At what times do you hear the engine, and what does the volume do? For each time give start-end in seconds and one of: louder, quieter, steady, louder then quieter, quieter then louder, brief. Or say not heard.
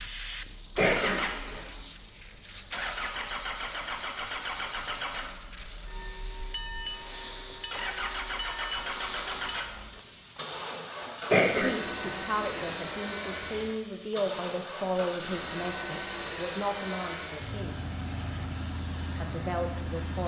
0.0-20.2 steady.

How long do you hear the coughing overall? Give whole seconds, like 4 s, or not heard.
2 s.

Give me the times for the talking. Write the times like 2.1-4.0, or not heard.
11.6-17.9, 19.1-20.2.